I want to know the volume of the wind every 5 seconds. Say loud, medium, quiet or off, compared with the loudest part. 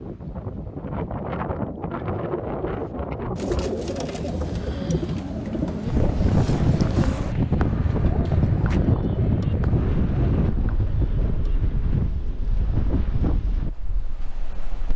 medium, loud, medium.